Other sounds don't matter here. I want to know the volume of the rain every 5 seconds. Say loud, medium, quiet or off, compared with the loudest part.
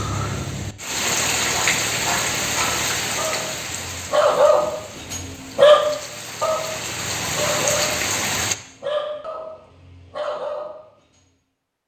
loud, loud, off.